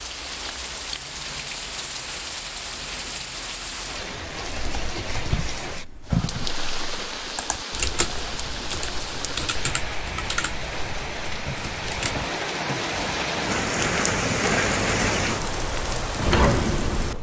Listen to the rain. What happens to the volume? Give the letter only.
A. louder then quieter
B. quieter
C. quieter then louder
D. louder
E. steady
D.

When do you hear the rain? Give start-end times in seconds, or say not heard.
0.0-17.1.